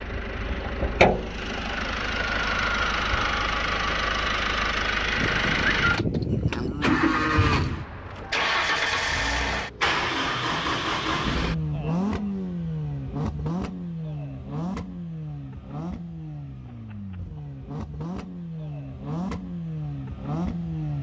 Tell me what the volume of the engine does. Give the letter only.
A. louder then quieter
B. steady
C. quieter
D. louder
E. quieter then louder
C.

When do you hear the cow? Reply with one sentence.
The cow can be heard from 5.2 to 7.7 s.